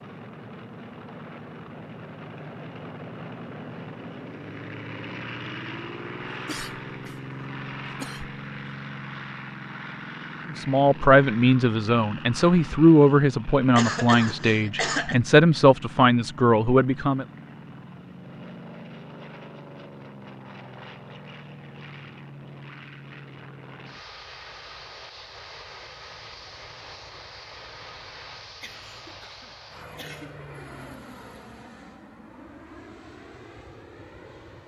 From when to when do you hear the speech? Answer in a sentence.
The speech can be heard from 10.6 to 17.2 s.